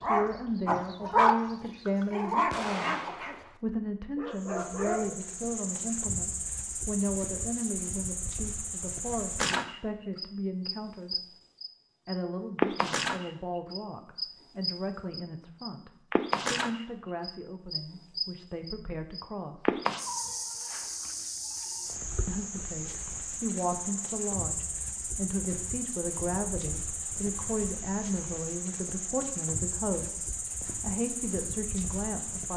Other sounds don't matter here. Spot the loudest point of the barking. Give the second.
1 s.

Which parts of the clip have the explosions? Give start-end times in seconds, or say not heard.
2.5-3.6.